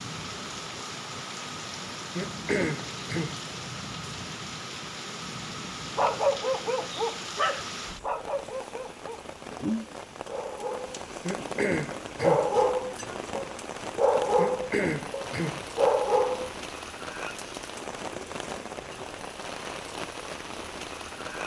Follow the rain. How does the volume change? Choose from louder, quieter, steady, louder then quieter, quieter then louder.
steady.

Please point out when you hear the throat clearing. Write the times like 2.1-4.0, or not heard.
2.1-3.4, 11.2-12.5, 14.3-15.7.